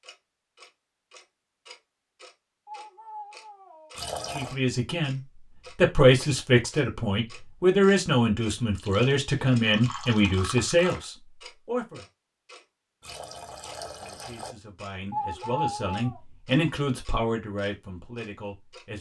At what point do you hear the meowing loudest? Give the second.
16 s.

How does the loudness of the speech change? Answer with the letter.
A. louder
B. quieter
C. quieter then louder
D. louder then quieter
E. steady
B.